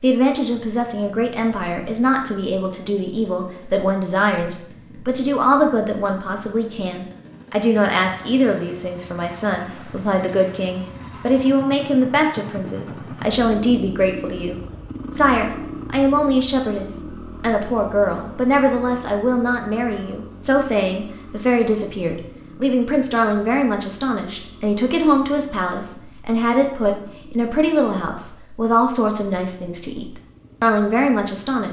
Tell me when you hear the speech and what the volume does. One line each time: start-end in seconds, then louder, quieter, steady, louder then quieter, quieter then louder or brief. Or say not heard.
0.0-31.6 steady.